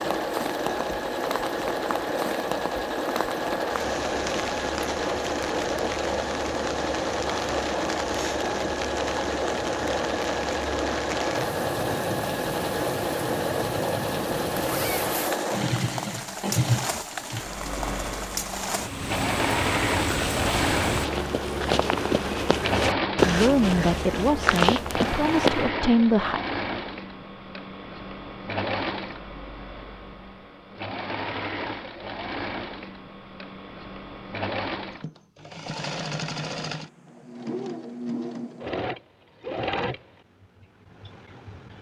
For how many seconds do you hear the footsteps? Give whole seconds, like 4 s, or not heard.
6 s.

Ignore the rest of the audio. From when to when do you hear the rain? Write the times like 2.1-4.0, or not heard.
0.0-21.1.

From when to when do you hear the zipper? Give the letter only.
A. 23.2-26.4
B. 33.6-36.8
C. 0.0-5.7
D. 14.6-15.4
D.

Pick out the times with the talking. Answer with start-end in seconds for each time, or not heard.
23.2-26.4.